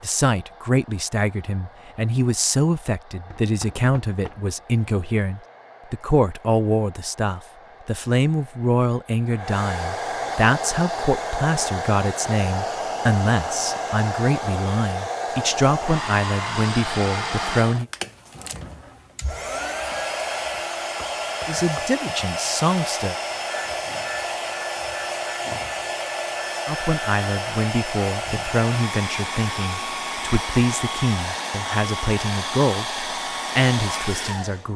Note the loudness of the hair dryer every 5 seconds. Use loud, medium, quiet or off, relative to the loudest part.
quiet, medium, loud, loud, loud, loud, loud.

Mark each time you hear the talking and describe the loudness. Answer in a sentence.
You can hear the talking from 0.0 to 17.9 s, at a steady volume; briefly from 21.4 to 23.1 s; and from 26.6 to 34.7 s, at a steady volume.